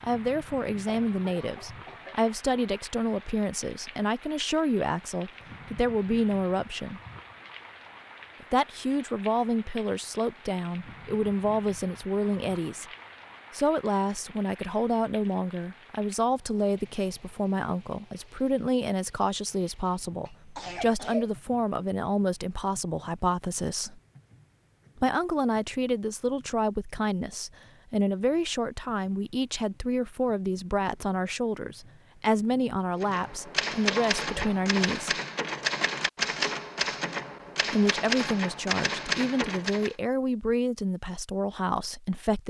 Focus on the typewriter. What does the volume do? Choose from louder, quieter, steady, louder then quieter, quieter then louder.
steady.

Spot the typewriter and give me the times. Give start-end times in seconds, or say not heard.
33.0-40.0.